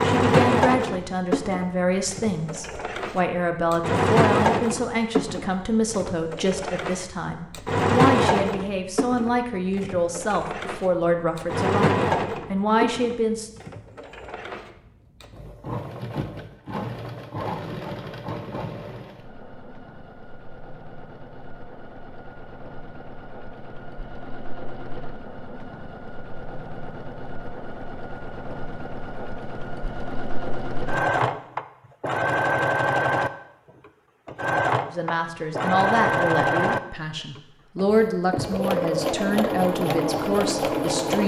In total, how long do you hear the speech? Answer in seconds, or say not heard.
20 s.